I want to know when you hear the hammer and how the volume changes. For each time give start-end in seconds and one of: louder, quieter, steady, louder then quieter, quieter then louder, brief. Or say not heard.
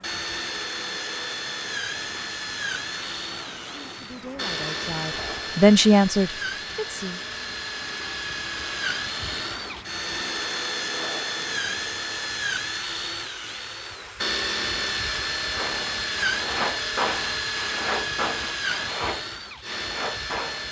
not heard.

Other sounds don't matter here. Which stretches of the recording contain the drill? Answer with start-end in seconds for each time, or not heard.
0.0-20.6.